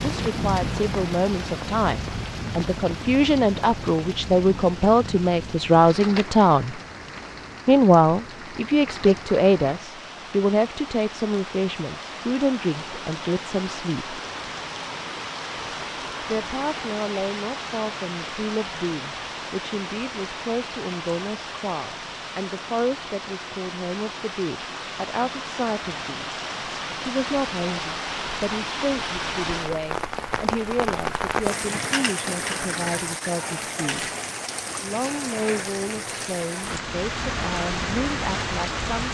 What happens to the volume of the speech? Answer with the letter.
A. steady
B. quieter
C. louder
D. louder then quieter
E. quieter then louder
B.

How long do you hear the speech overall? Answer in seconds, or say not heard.
35 s.